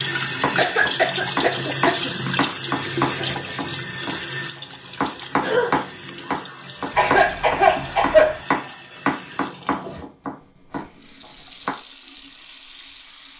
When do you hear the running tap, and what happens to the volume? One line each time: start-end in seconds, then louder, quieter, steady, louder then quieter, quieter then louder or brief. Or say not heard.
0.0-13.3 quieter.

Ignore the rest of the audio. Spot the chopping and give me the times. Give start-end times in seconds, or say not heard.
0.4-4.2, 5.0-10.8.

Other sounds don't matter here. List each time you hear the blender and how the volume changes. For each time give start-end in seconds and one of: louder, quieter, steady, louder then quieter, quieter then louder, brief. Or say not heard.
not heard.